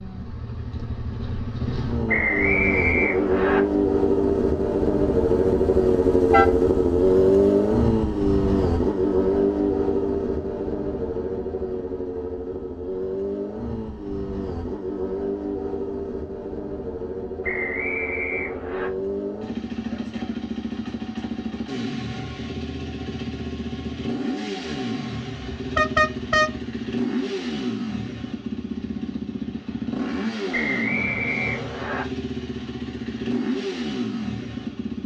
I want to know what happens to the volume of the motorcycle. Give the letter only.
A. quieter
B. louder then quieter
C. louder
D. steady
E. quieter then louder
A.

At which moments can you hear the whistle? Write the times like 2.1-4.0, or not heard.
2.0-3.6, 17.4-18.9, 30.5-32.0.